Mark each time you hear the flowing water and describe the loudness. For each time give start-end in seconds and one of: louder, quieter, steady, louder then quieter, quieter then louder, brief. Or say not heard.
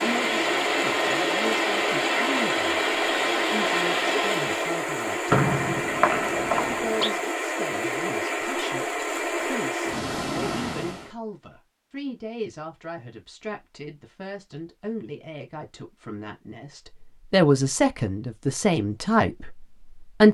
0.0-11.1 steady.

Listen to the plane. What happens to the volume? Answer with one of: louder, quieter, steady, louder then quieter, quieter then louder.
steady.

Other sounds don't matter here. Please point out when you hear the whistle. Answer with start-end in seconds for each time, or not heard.
5.3-7.1.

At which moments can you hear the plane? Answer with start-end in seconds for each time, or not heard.
0.0-4.8.